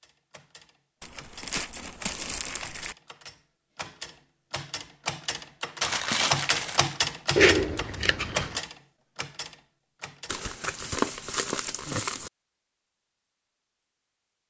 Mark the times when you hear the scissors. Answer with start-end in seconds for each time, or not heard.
7.3-8.7.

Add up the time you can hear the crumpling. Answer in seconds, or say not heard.
5 s.